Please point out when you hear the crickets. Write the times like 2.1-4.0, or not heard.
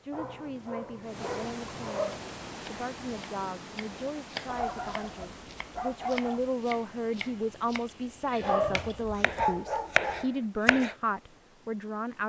not heard.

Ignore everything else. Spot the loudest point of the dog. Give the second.
10 s.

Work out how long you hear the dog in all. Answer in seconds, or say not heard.
6 s.